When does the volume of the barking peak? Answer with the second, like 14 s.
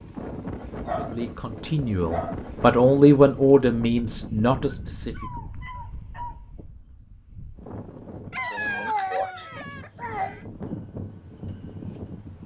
9 s.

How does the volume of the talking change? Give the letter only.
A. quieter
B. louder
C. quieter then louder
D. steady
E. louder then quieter
E.